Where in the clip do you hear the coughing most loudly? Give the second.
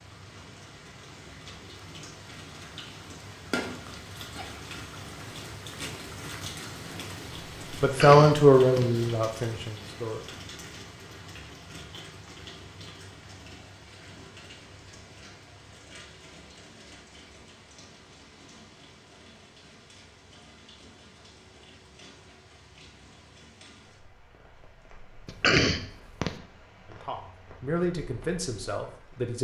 26 s.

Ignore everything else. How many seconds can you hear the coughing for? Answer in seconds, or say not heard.
2 s.